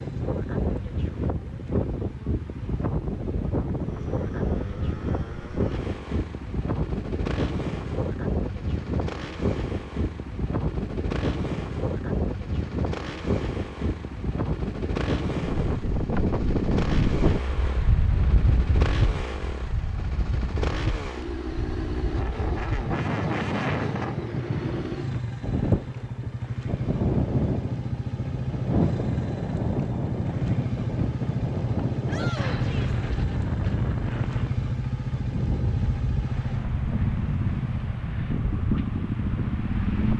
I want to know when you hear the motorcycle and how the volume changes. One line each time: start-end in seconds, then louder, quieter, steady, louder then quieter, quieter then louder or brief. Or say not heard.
0.0-40.1 louder.